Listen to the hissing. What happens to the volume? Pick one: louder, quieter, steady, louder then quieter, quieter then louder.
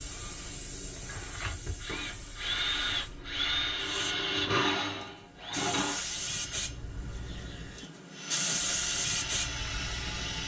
louder.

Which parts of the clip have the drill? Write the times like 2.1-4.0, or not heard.
0.0-6.8, 8.1-10.4.